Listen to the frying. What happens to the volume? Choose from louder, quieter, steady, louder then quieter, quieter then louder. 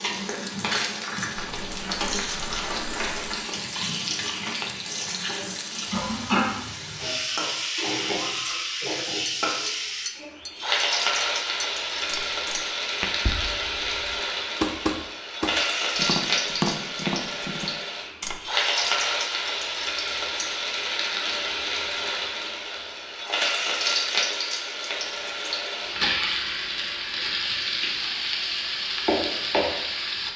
steady.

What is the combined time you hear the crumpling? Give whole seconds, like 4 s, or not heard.
2 s.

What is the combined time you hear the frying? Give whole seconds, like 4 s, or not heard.
30 s.